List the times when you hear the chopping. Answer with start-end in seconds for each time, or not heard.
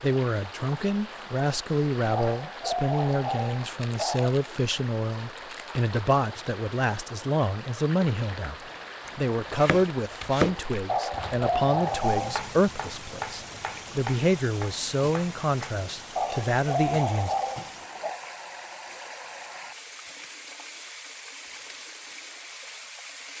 8.6-15.9.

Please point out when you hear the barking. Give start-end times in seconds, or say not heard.
2.1-4.3, 10.8-12.4, 16.1-18.2.